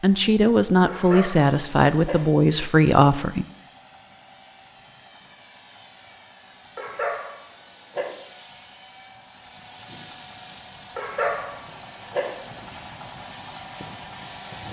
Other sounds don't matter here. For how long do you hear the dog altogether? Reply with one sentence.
The dog can be heard for 4 seconds in total.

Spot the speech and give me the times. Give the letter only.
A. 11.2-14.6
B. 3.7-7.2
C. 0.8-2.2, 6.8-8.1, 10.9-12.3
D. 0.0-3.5
D.